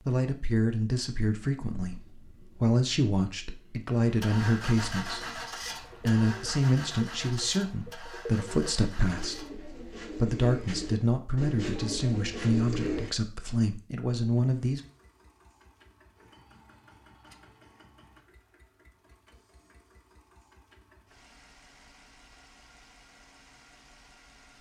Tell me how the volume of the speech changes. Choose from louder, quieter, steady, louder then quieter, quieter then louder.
steady.